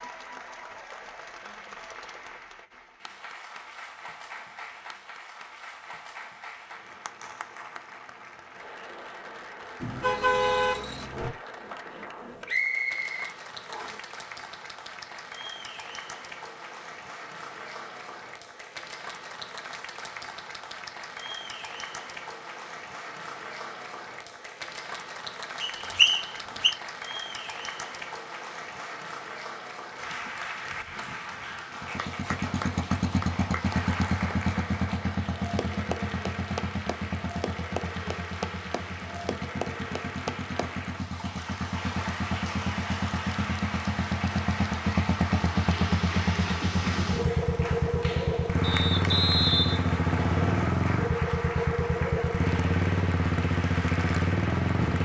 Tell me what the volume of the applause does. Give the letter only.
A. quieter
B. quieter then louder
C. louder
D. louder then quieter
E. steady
C.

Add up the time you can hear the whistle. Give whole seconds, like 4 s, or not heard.
5 s.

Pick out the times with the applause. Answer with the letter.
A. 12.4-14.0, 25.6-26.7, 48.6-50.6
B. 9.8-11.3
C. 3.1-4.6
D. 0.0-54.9
D.